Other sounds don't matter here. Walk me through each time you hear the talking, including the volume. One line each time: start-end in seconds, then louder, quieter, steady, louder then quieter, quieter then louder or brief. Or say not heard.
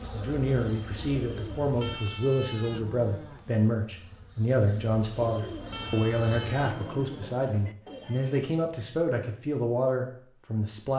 0.1-10.9 steady.